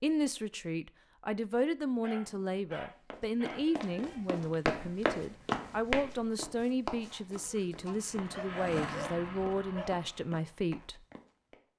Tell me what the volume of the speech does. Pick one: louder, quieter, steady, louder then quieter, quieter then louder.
steady.